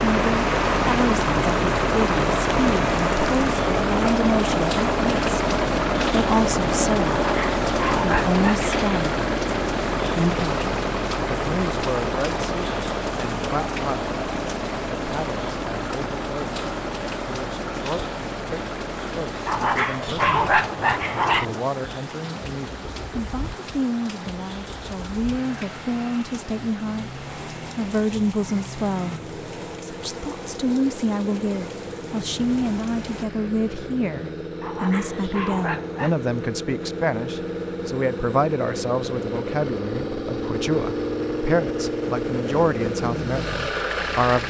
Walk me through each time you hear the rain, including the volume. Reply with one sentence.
You can hear the rain from 0.0 to 33.2 s, getting quieter.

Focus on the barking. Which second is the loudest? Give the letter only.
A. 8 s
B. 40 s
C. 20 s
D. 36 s
C.